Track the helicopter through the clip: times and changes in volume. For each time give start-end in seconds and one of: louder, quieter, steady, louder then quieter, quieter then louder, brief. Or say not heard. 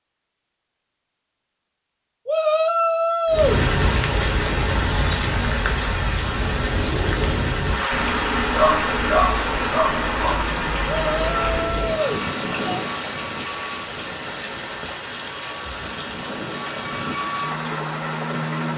7.9-18.7 quieter then louder.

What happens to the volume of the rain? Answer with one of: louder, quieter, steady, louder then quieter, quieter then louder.
quieter.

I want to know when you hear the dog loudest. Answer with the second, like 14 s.
9 s.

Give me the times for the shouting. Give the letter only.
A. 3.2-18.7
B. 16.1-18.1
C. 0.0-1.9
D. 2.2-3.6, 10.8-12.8
D.